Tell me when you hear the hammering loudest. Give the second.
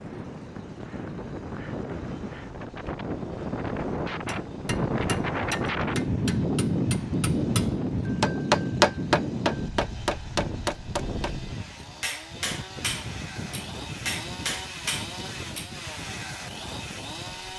9 s.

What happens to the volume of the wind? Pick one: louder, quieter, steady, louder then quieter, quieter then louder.
louder then quieter.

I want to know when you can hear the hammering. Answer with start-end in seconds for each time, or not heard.
4.2-15.7.